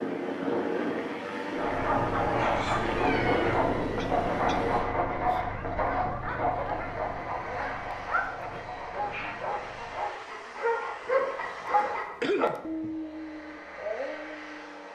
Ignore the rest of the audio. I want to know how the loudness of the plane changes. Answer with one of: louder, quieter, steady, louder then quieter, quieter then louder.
quieter.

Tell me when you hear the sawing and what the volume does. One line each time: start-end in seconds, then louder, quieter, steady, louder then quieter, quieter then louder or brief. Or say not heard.
1.6-12.3 quieter.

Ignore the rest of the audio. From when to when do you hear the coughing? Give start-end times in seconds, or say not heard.
4.0-4.8, 12.2-12.9.